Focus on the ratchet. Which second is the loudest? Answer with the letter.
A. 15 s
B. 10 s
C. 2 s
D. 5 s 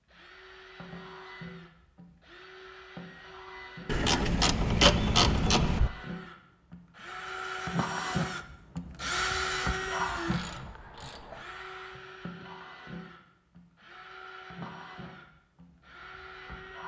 D.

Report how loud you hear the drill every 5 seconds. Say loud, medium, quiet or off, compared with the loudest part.
quiet, loud, medium, quiet.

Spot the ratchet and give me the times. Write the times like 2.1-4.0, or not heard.
3.9-5.9, 10.3-11.4.